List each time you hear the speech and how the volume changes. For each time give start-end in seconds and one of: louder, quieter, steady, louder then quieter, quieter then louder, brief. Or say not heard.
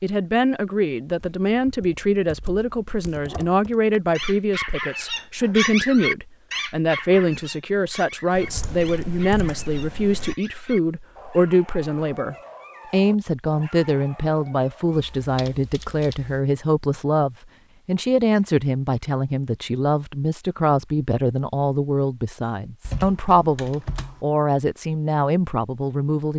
0.0-26.3 steady.